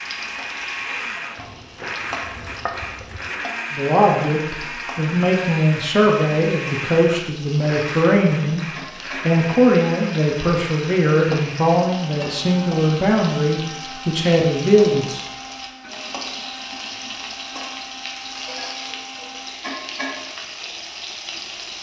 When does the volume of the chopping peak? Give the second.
3 s.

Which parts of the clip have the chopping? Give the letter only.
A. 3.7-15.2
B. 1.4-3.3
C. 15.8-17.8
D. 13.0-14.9
B.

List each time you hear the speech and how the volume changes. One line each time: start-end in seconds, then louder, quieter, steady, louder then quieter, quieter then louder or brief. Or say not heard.
3.7-15.2 steady.